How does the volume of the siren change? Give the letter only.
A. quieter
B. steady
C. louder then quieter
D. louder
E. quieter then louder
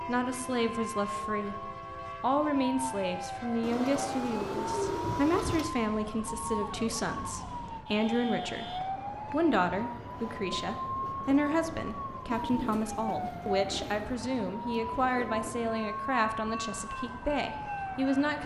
B.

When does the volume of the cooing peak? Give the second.
5 s.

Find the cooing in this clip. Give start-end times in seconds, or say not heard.
3.6-5.7, 12.3-14.1.